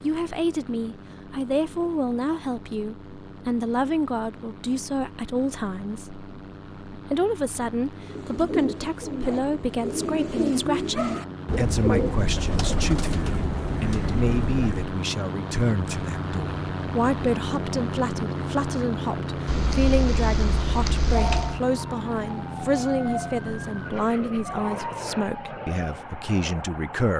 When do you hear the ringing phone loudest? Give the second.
21 s.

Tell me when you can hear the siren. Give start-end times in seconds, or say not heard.
21.6-27.1.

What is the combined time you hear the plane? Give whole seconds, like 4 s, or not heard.
27 s.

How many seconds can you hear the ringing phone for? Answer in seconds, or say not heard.
2 s.